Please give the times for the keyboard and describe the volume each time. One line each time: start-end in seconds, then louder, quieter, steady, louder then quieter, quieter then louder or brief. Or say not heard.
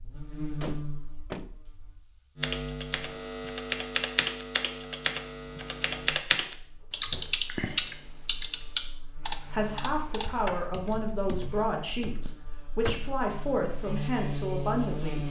2.4-12.3 quieter.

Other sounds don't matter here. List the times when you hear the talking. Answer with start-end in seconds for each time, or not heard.
9.5-15.2.